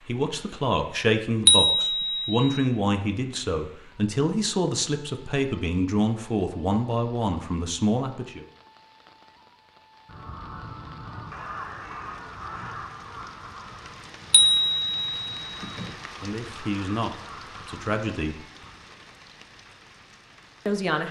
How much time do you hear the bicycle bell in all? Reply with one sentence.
The bicycle bell can be heard for 3 seconds in total.